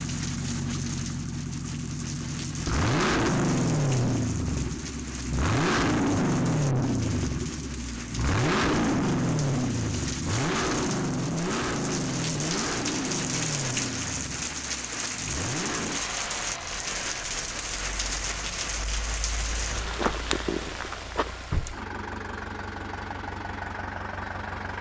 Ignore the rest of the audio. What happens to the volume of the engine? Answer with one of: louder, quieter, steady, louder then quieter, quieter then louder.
quieter.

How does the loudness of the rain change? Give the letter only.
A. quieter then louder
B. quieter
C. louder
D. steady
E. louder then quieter
C.